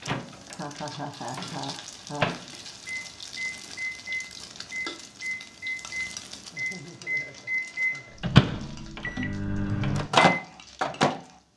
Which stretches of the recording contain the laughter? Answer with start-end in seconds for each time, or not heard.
0.5-2.3, 6.5-8.2.